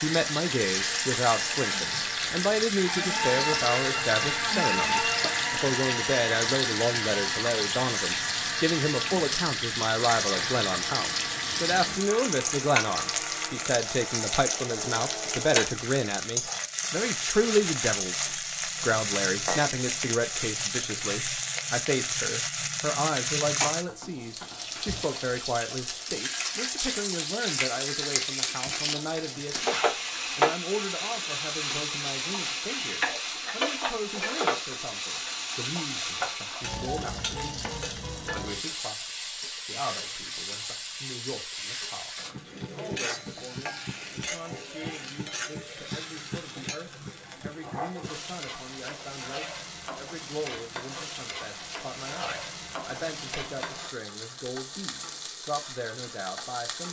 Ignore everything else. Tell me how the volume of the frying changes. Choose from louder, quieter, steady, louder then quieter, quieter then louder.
quieter.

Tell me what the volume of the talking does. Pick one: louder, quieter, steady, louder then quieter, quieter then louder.
quieter.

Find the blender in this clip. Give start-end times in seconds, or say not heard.
0.0-15.6.